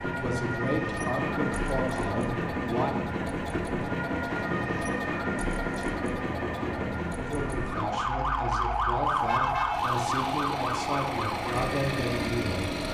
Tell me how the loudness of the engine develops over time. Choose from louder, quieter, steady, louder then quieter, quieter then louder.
quieter then louder.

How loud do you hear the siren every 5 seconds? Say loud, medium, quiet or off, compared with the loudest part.
medium, loud, loud.